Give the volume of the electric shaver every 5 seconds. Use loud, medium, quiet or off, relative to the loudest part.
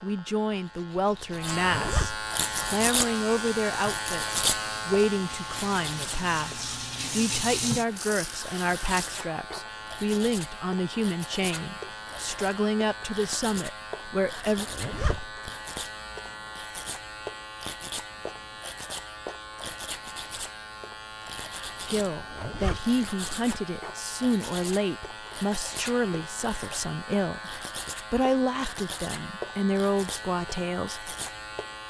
loud, medium, medium, medium, medium, medium, medium.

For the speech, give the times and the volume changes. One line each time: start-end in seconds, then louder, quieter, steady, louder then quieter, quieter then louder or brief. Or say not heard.
0.0-14.7 steady
21.9-31.1 steady.